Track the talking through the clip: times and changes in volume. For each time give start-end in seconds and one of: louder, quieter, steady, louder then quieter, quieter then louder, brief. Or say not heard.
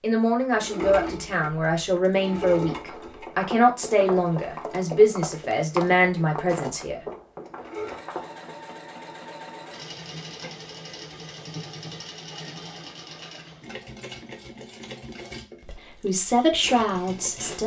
0.0-7.0 steady
15.6-17.6 brief.